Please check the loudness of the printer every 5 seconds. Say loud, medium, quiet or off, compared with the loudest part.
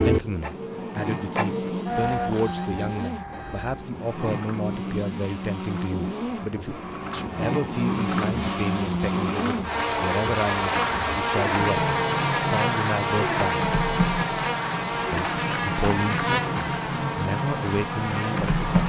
loud, medium, loud, loud.